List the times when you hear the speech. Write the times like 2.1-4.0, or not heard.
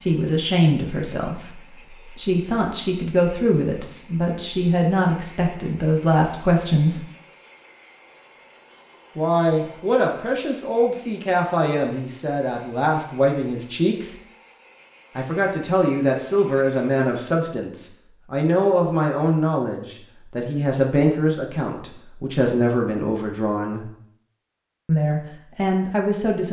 0.0-7.0, 9.2-14.2, 15.2-23.9, 24.9-26.4.